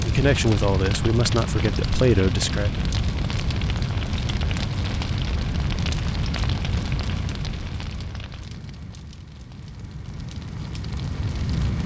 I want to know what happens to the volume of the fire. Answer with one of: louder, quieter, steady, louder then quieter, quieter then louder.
quieter.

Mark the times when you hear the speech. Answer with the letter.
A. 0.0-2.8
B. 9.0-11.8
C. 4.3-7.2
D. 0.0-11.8
A.